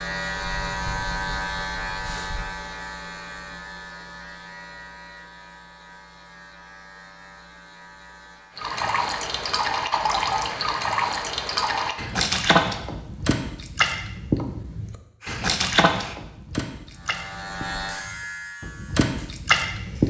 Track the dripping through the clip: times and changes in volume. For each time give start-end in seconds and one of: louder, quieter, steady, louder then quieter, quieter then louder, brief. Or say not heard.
8.6-20.0 steady.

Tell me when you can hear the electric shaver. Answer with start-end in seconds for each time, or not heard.
0.0-8.7, 16.9-20.0.